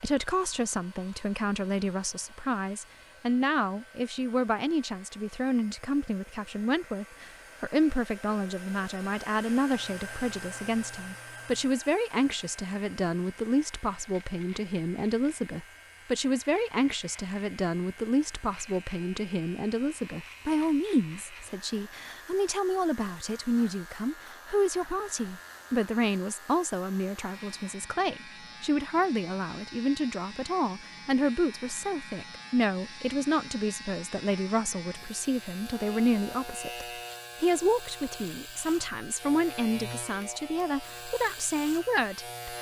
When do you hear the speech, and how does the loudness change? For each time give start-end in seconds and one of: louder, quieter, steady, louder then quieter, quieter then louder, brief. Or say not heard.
0.0-42.5 steady.